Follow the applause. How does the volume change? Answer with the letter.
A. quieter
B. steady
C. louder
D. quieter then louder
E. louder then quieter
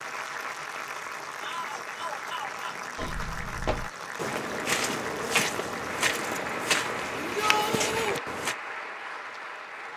B.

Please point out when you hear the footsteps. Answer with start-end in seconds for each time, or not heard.
3.0-8.6.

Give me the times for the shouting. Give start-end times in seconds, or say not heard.
1.4-2.9, 7.2-8.2.